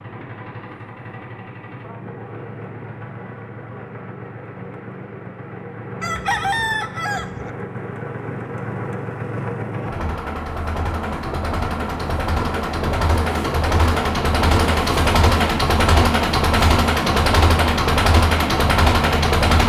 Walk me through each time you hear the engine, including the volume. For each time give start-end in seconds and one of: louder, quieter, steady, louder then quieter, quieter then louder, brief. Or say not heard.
0.0-19.6 louder.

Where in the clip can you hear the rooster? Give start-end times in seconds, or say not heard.
6.0-7.5.